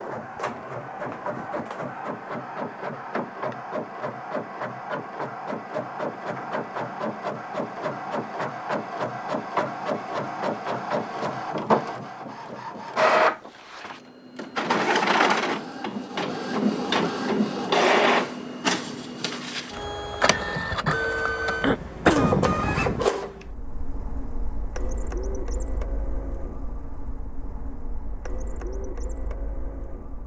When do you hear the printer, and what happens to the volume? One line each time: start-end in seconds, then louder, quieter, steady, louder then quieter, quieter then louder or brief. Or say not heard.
0.0-30.2 louder then quieter.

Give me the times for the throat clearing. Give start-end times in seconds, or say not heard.
21.6-23.1.